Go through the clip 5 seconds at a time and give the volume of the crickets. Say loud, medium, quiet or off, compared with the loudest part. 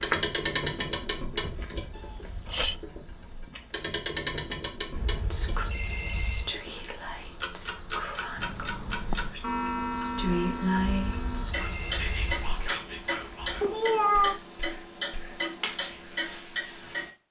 loud, medium, loud, off.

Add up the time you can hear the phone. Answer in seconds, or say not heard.
3 s.